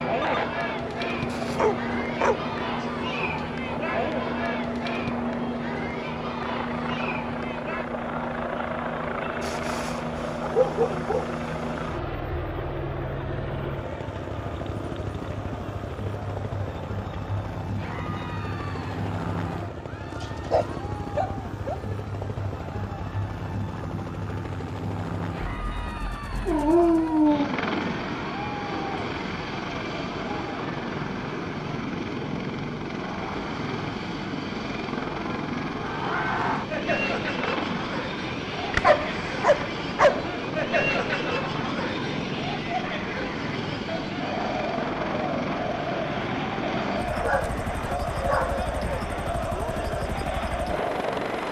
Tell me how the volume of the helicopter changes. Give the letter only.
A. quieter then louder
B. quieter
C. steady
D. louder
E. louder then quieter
C.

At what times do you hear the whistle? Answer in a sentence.
You can't hear the whistle here.